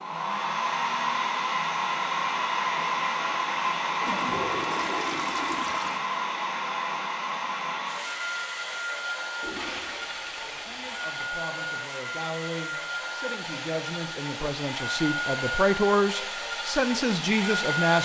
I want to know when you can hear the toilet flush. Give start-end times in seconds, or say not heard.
4.0-6.0, 9.4-11.1.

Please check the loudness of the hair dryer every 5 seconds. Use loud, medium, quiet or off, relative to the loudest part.
loud, loud, medium, loud.